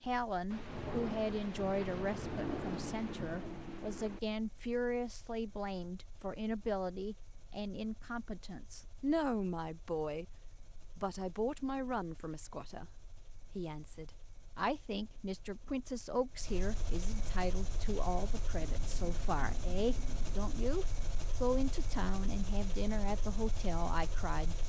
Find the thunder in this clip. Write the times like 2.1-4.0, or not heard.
0.5-4.2, 18.6-20.5.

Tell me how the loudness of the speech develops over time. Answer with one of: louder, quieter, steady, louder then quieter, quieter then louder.
steady.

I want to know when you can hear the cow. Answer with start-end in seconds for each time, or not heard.
not heard.